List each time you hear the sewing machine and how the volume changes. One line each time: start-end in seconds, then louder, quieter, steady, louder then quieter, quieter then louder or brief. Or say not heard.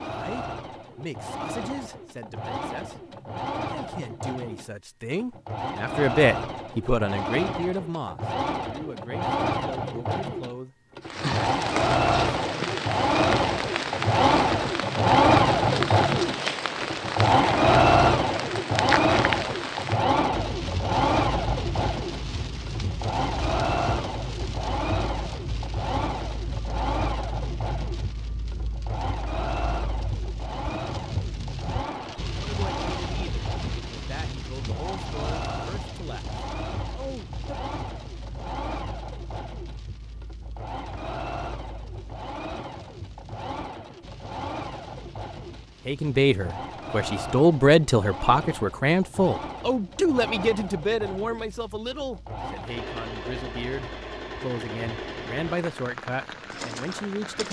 0.0-57.4 louder then quieter.